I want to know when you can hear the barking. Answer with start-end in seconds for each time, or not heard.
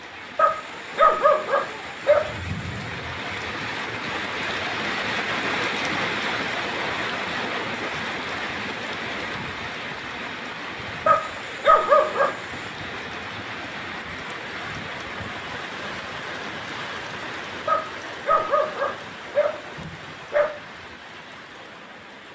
0.3-2.6, 11.1-12.3, 17.6-20.4.